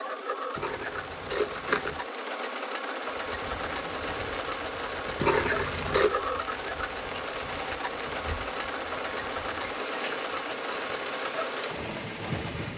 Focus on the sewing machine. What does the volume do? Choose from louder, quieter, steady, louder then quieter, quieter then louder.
steady.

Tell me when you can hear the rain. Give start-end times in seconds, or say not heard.
3.0-12.7.